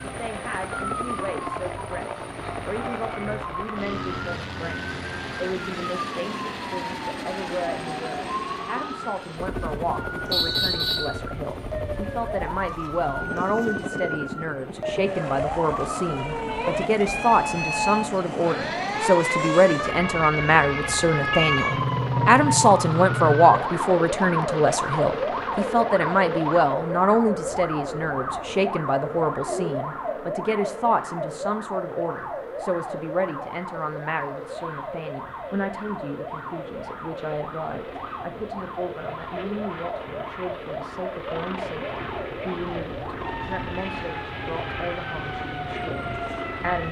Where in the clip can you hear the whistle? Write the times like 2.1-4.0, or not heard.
10.3-11.2.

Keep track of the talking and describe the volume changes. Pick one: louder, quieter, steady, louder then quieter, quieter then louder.
louder then quieter.